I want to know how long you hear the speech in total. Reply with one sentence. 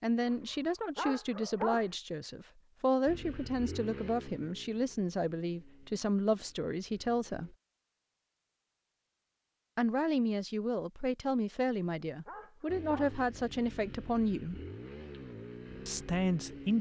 The speech can be heard for 13 seconds in total.